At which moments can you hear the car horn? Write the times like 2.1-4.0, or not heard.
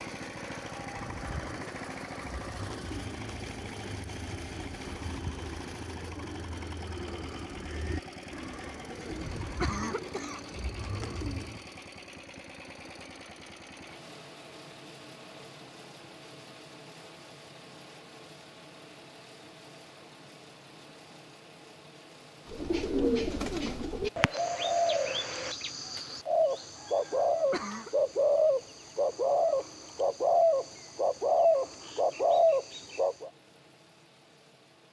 not heard.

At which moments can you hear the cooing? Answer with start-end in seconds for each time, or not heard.
0.8-11.7, 22.4-33.3.